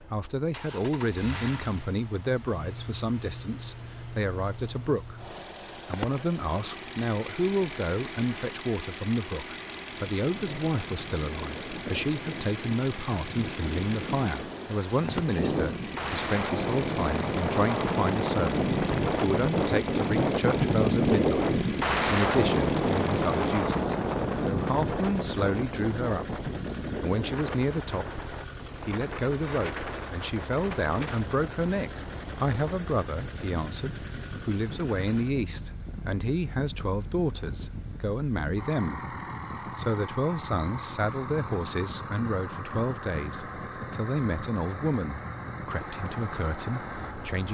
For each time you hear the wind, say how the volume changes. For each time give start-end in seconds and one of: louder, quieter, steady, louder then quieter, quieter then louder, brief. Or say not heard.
10.2-47.4 louder then quieter.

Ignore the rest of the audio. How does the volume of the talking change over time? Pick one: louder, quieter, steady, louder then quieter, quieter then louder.
steady.